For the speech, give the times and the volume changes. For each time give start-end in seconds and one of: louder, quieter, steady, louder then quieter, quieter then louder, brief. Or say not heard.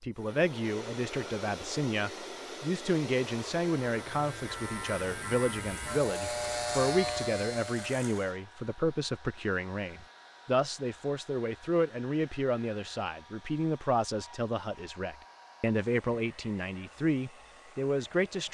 0.0-18.4 steady.